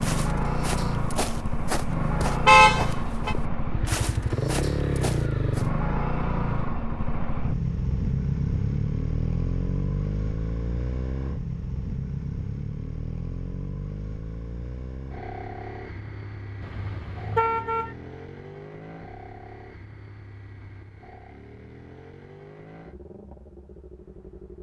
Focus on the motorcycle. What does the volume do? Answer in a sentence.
The loudness of the motorcycle goes down.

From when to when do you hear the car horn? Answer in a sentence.
The car horn can be heard from 2.5 to 3.4 s and from 16.6 to 17.9 s.